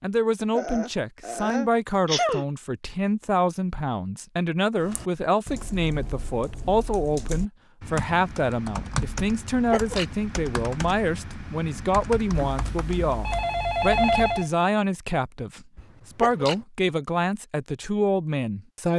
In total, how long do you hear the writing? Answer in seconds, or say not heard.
not heard.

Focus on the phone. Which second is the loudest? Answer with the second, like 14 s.
14 s.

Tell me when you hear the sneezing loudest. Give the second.
2 s.